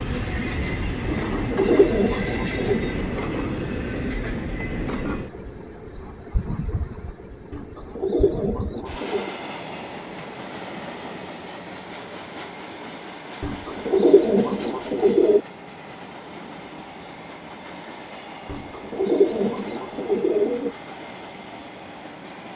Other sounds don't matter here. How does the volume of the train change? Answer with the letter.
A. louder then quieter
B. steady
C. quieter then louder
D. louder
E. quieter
E.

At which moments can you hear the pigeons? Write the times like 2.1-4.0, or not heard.
1.3-2.9, 7.5-9.3, 13.4-15.4, 18.4-20.7.